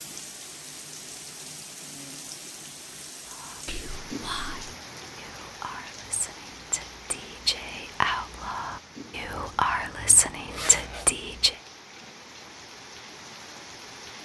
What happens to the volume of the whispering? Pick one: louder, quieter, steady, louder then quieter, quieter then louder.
louder.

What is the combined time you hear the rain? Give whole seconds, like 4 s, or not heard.
14 s.